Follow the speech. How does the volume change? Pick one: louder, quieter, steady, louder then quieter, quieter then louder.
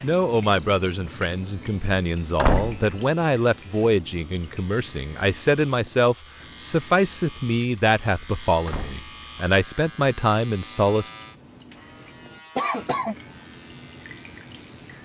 steady.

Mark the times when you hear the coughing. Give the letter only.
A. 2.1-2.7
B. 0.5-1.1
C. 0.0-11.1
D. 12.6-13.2
D.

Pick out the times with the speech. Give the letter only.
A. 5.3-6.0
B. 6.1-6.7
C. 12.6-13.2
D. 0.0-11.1
D.